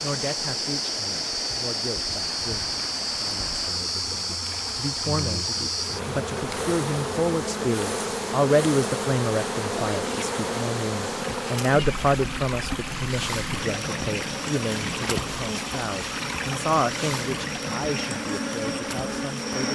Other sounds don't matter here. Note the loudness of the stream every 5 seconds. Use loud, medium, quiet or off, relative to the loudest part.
medium, medium, loud, loud.